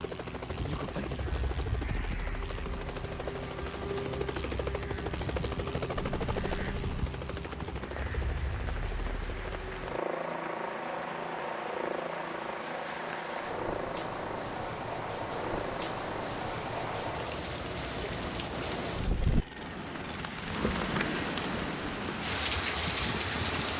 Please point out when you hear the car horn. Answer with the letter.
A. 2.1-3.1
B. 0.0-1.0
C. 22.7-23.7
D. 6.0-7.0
D.